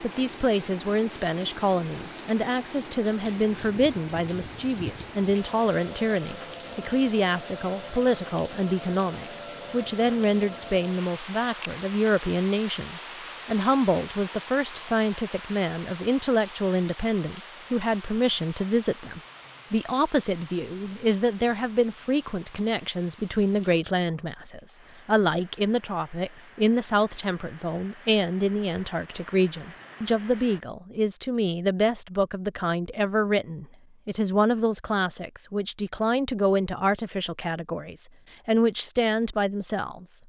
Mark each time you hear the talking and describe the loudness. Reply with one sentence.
You can hear the talking from 0.0 to 40.2 s, at a steady volume.